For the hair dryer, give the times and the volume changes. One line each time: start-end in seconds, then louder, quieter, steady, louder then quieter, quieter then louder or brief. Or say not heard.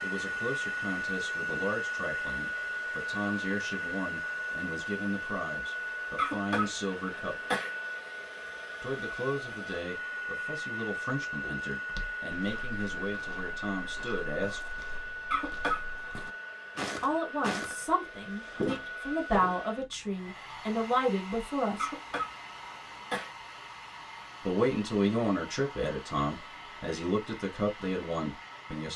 0.0-28.9 quieter.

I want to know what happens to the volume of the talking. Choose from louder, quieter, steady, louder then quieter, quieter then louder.
louder.